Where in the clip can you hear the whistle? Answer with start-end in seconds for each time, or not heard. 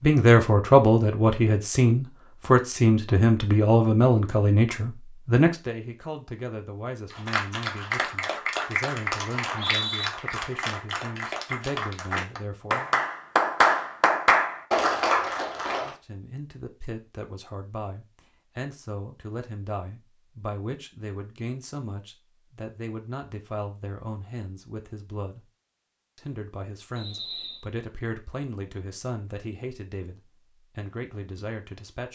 9.3-10.1, 26.9-27.6.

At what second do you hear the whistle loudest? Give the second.
10 s.